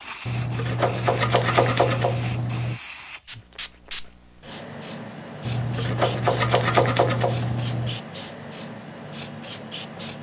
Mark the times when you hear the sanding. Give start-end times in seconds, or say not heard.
0.2-2.8, 5.5-8.0.